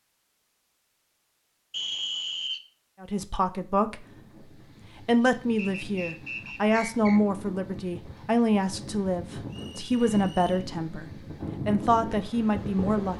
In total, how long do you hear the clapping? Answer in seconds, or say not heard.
not heard.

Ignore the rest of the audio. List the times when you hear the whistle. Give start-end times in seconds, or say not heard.
1.7-2.6, 5.5-7.2, 9.4-10.7.